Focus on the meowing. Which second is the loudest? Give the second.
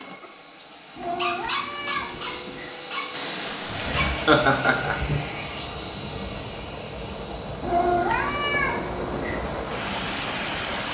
8 s.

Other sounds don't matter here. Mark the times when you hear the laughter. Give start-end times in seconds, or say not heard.
4.2-5.0.